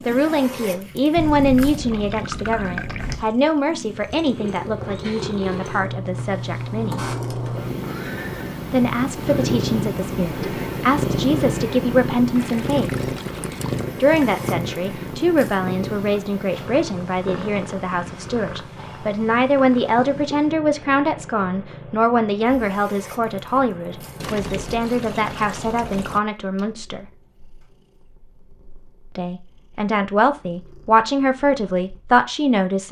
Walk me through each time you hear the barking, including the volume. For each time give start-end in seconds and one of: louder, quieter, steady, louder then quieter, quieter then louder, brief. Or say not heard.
not heard.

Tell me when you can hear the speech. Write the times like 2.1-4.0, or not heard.
0.0-7.1, 8.7-13.1, 14.0-27.1, 29.1-32.8.